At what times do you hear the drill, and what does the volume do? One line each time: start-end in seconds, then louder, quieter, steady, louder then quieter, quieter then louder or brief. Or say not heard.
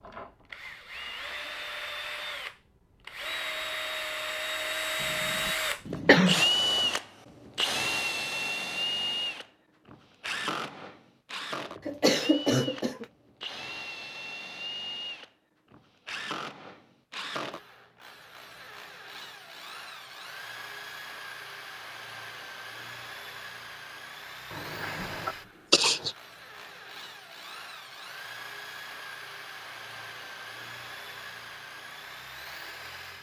0.0-33.1 quieter.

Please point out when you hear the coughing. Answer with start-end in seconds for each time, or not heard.
5.0-6.4, 11.8-13.1, 24.8-26.1.